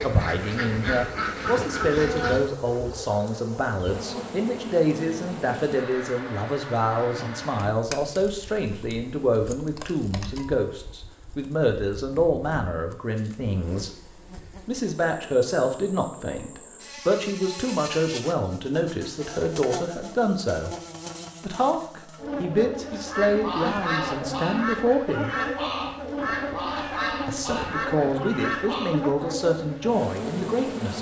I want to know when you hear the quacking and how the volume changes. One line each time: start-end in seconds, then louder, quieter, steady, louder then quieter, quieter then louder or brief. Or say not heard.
0.0-2.5 brief
23.1-29.0 steady.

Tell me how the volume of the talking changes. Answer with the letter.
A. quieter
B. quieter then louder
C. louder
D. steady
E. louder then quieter
D.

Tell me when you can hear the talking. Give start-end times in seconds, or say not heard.
0.0-13.9, 14.7-20.8, 21.4-25.4, 27.2-30.9.